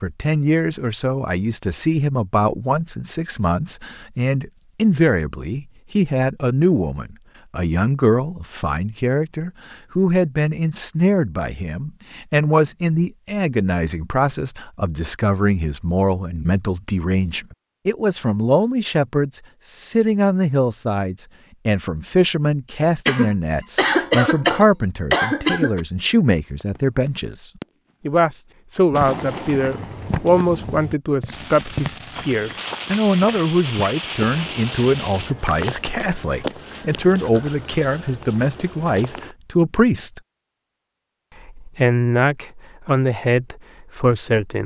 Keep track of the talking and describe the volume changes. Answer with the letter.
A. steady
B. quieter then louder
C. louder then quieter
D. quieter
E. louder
A.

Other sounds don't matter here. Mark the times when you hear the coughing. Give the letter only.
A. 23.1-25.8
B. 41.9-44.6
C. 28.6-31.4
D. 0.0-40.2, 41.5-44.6
A.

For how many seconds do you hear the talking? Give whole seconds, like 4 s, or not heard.
43 s.